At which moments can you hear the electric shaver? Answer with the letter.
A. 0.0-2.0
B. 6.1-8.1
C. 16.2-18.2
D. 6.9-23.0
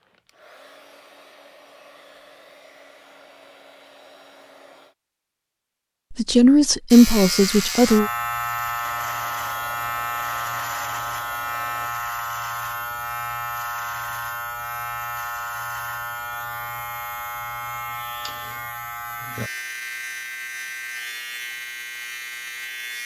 D.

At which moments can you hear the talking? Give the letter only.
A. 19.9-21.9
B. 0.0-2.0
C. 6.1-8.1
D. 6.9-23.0
C.